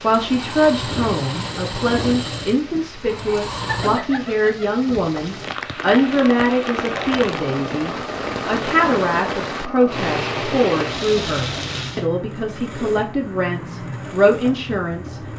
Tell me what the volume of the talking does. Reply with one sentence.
The volume of the talking stays about the same.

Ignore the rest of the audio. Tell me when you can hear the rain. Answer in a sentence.
You can hear the rain from 0.0 to 12.1 s.